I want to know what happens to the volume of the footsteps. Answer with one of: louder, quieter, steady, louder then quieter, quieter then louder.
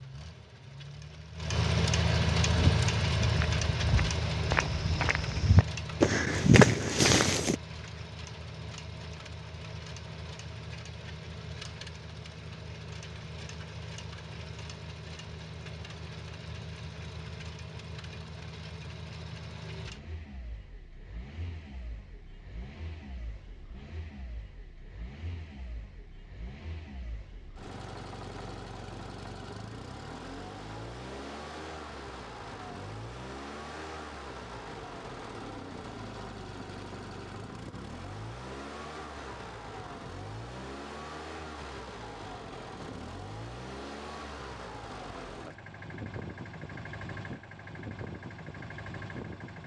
louder.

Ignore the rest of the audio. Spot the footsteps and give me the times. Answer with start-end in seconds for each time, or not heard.
2.5-7.5.